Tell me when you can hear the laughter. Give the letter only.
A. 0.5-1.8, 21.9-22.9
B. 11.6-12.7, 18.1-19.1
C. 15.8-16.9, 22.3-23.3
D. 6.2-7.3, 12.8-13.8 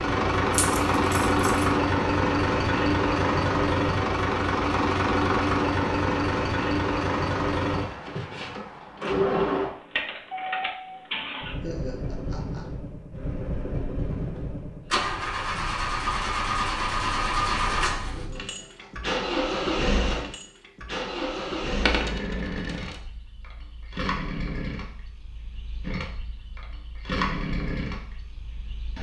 B.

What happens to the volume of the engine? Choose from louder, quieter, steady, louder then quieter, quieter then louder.
quieter.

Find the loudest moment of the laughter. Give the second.
12 s.